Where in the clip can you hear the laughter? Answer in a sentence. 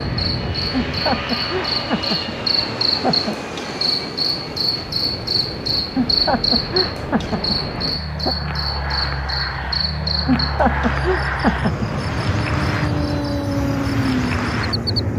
The laughter can be heard from 0.7 to 3.4 s, from 6.0 to 8.3 s and from 10.2 to 11.8 s.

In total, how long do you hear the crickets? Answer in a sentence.
The crickets can be heard for 15 seconds in total.